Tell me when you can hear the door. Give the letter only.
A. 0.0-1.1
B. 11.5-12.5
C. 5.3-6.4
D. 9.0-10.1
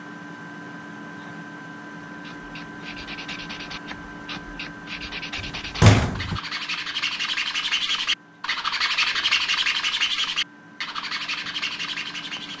C.